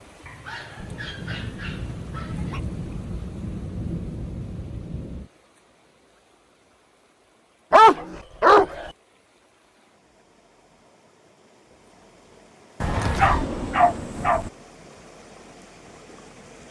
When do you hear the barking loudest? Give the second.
8 s.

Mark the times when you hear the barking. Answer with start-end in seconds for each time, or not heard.
0.2-2.6, 7.7-8.9, 12.8-14.5.